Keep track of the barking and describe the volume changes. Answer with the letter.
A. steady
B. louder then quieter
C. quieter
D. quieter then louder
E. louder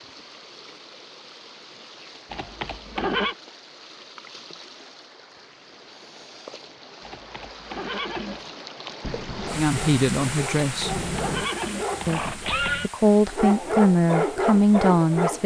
E.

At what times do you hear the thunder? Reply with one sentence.
The thunder can be heard from 9.0 to 11.6 s.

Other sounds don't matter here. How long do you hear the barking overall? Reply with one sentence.
The barking can be heard for 6 seconds in total.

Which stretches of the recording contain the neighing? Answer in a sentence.
You can hear the neighing from 2.3 to 3.4 s, from 7.0 to 8.4 s and from 10.6 to 12.9 s.